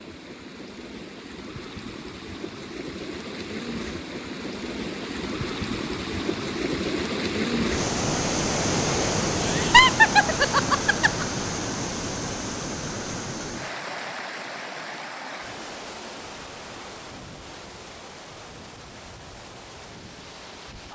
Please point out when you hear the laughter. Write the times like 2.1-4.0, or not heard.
9.4-11.2.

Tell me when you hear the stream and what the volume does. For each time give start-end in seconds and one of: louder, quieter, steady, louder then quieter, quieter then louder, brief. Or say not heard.
0.0-20.9 louder then quieter.